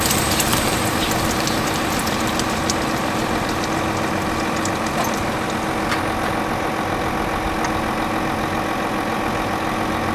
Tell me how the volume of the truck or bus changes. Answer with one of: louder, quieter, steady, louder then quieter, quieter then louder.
steady.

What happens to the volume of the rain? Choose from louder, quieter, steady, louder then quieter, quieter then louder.
quieter.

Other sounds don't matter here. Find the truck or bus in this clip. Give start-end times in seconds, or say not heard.
0.0-10.0.